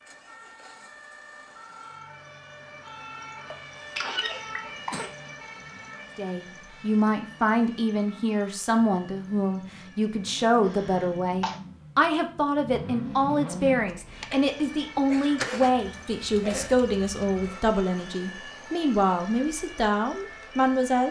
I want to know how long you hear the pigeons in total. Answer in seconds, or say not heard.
not heard.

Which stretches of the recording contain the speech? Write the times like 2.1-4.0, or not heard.
6.2-21.0.